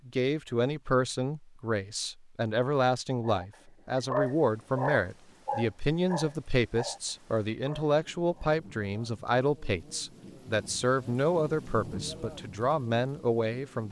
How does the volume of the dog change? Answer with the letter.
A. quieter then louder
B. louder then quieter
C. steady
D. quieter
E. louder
D.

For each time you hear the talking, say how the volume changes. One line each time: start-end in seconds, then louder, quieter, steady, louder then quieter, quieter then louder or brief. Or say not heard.
0.1-13.8 steady.